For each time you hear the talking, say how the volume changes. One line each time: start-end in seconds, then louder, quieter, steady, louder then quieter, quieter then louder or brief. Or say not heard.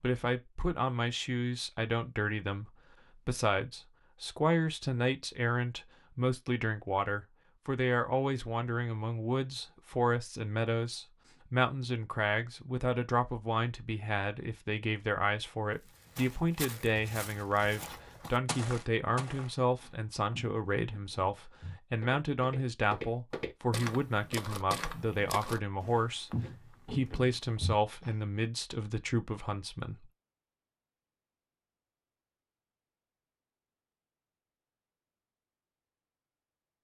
0.0-30.1 steady.